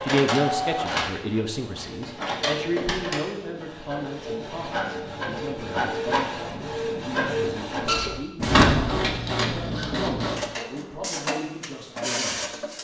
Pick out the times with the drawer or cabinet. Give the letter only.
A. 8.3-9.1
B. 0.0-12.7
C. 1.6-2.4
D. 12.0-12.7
A.